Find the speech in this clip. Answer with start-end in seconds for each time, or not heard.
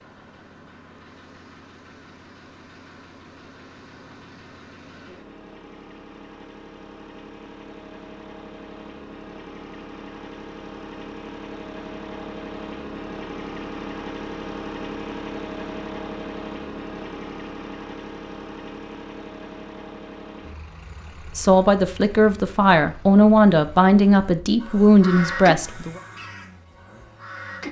21.4-26.0.